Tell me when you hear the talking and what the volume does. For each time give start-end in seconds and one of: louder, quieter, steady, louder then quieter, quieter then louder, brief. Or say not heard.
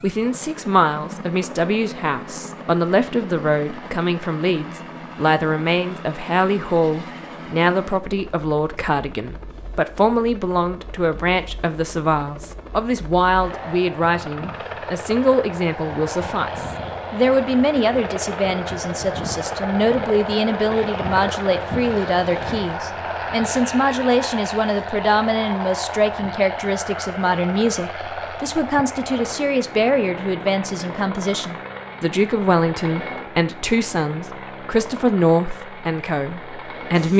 0.0-37.1 steady.